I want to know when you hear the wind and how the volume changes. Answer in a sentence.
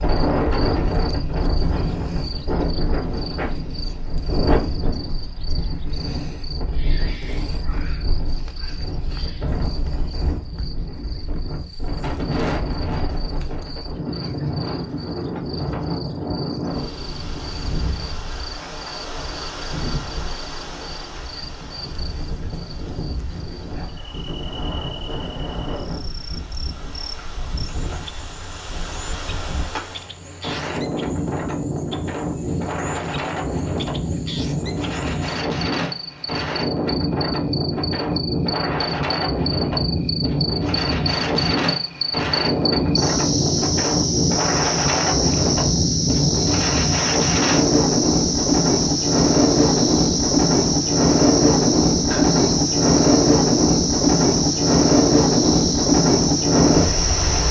You can hear the wind from 0.0 to 57.4 s, getting louder.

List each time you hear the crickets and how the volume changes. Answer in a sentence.
You can hear the crickets from 0.0 to 57.4 s, getting louder.